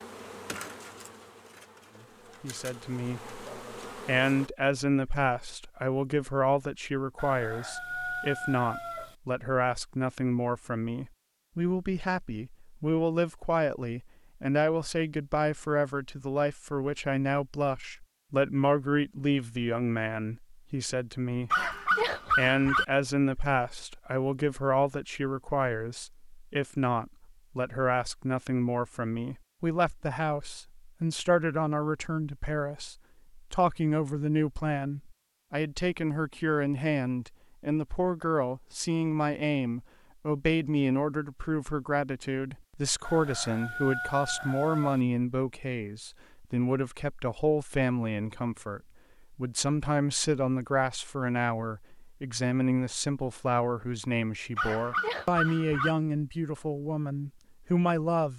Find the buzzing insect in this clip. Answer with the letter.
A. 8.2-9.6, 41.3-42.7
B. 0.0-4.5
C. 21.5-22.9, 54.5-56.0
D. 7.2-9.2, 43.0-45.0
B.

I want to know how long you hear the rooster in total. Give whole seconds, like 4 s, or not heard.
4 s.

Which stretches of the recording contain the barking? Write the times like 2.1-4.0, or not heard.
21.5-22.9, 54.5-56.0.